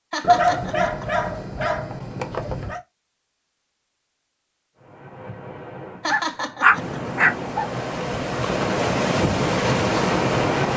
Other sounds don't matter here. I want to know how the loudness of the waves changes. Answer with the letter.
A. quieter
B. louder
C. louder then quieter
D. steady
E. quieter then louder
B.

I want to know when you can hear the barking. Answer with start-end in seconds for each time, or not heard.
0.2-2.8, 6.1-7.7.